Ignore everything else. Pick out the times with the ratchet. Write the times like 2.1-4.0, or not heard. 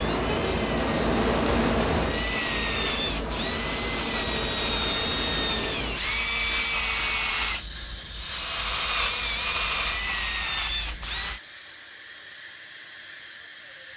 not heard.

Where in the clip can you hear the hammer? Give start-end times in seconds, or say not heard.
not heard.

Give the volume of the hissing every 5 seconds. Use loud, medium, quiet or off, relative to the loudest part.
loud, medium, medium.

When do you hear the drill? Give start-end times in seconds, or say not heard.
0.0-11.4.